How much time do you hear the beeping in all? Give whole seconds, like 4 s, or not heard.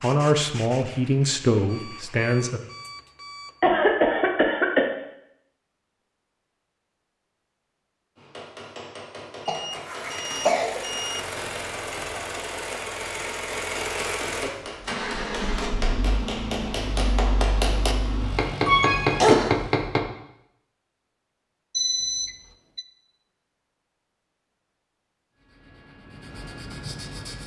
5 s.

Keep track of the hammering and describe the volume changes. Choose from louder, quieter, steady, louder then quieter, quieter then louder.
louder.